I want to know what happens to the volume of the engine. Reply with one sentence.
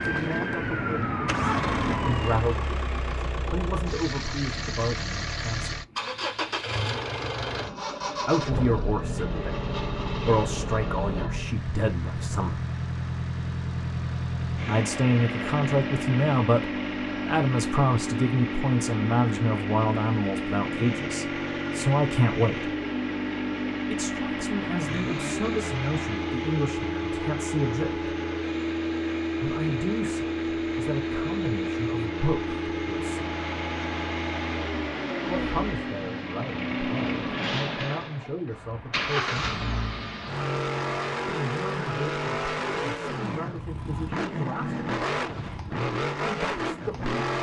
The loudness of the engine stays about the same.